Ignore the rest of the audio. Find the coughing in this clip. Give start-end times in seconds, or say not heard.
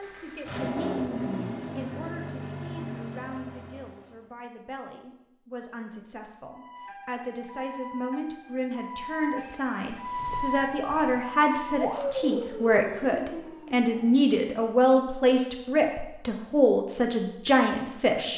not heard.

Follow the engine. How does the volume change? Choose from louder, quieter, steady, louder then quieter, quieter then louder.
quieter.